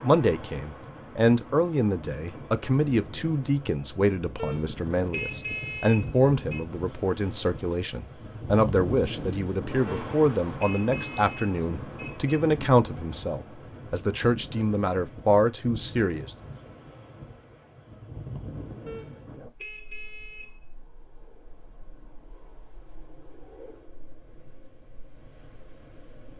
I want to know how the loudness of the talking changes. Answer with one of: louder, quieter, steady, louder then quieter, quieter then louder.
steady.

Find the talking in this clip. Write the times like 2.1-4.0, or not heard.
0.0-16.3.